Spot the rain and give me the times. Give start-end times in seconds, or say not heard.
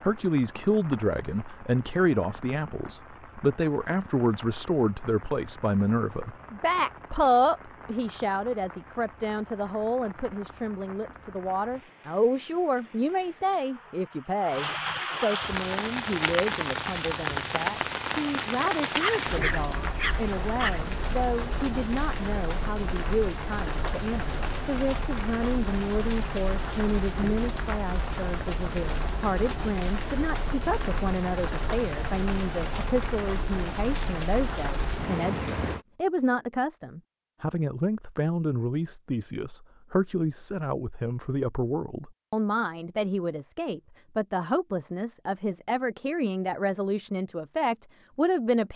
0.0-35.8.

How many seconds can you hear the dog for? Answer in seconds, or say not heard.
2 s.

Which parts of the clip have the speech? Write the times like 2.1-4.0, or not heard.
0.0-48.7.